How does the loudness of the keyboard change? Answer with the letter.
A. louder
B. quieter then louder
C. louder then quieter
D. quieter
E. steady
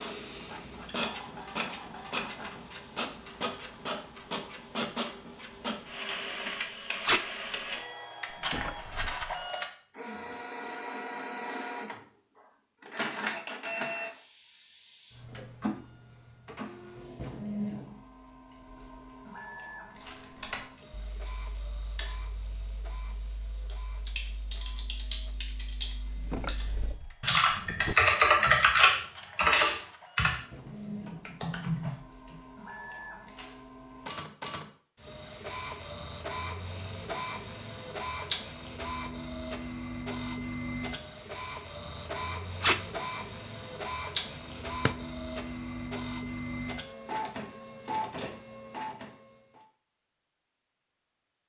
C.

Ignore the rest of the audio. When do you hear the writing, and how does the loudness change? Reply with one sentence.
The writing can't be heard in this clip.